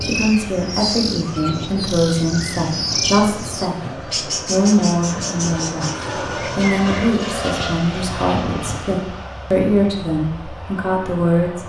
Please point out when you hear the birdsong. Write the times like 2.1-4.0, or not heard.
0.0-7.2.